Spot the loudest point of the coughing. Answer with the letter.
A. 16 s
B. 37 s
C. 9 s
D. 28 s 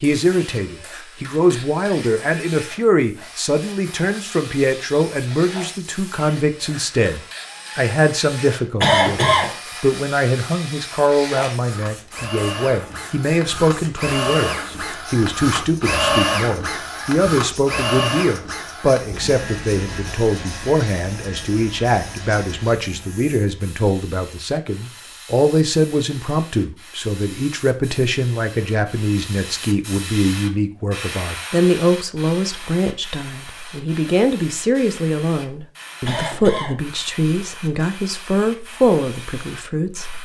C.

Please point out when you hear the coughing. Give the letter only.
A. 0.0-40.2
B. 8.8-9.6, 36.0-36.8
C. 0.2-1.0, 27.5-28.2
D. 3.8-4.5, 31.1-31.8
B.